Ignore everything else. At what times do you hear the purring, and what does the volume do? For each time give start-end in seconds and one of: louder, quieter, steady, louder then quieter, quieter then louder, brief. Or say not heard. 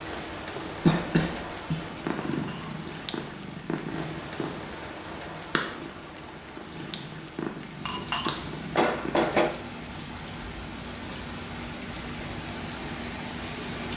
1.9-9.4 steady.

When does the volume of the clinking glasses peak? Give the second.
9 s.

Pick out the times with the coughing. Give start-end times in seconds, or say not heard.
0.8-1.8.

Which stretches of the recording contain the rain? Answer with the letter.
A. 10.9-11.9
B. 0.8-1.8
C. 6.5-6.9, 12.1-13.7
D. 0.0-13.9
D.